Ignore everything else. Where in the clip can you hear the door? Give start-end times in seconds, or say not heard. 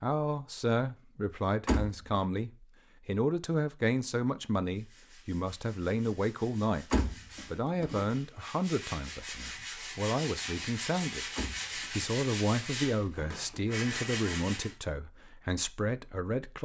1.6-2.2, 6.9-8.1, 11.3-12.1.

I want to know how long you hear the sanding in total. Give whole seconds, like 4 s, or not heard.
10 s.